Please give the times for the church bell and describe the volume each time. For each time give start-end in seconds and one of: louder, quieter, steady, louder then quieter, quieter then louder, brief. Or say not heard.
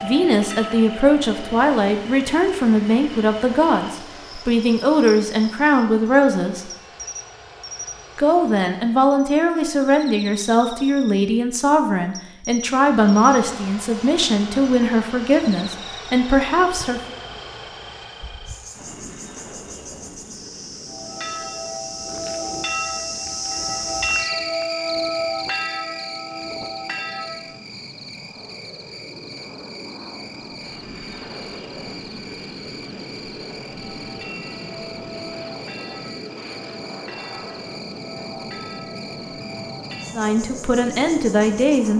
0.0-1.8 brief
20.9-27.6 louder then quieter
33.7-40.3 steady.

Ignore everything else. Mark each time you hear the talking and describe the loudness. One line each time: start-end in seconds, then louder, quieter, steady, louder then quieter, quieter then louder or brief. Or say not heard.
0.0-6.7 steady
8.2-17.1 steady
40.1-41.9 brief.